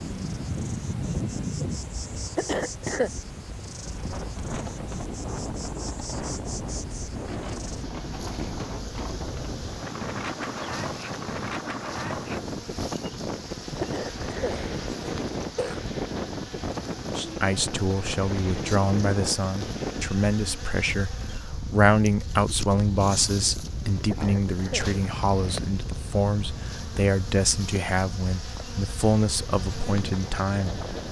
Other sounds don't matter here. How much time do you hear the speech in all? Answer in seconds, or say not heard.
14 s.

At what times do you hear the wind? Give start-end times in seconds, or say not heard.
0.0-31.0.